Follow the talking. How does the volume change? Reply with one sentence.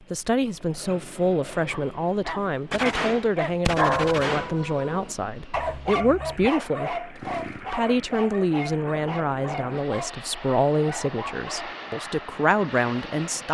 The volume of the talking stays about the same.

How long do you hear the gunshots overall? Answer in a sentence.
You can hear the gunshots for 2 seconds altogether.